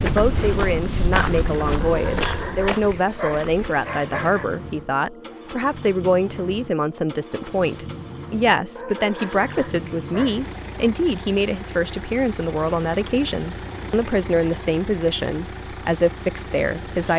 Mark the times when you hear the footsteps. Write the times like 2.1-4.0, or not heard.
0.0-3.7.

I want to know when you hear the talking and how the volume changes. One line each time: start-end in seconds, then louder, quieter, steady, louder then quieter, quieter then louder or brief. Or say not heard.
0.0-17.1 steady.